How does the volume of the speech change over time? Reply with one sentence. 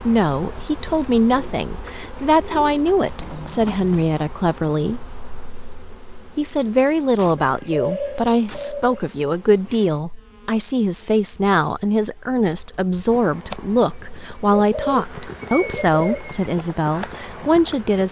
The volume of the speech stays about the same.